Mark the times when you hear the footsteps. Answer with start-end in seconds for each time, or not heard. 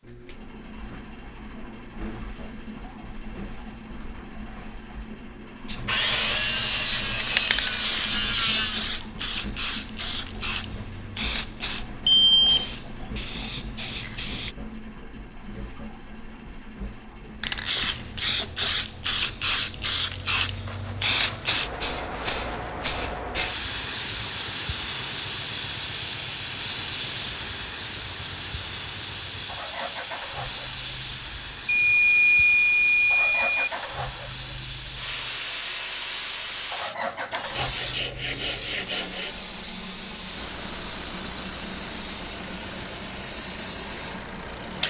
not heard.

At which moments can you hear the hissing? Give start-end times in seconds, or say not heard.
5.7-14.6, 17.4-44.8.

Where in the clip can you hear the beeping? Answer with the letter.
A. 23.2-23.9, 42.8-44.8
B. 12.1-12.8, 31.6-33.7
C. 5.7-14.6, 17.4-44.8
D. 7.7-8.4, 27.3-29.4
B.